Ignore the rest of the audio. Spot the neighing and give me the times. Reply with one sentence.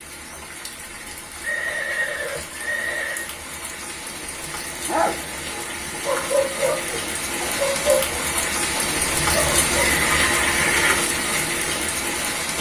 The neighing can be heard from 1.4 to 3.3 s and from 8.8 to 11.1 s.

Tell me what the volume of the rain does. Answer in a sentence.
The loudness of the rain goes up.